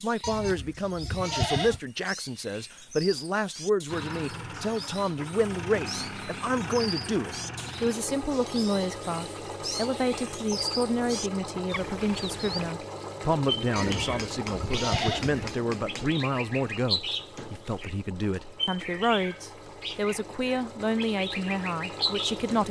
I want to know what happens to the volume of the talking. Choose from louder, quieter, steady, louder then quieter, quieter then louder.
steady.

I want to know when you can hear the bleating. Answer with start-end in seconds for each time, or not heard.
0.2-1.8, 13.8-15.6.